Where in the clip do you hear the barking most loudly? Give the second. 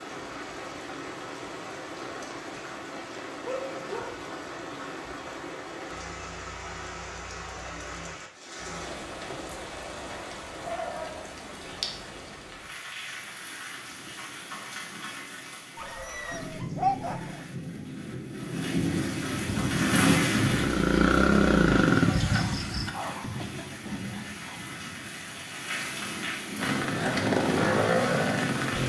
17 s.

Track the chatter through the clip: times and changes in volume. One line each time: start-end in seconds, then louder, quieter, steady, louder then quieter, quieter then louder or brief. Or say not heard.
not heard.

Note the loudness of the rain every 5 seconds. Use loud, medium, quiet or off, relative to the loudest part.
medium, medium, medium, loud, loud, loud.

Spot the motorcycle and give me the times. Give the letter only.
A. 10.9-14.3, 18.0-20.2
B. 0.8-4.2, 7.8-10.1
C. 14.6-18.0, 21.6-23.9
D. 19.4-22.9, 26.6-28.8
D.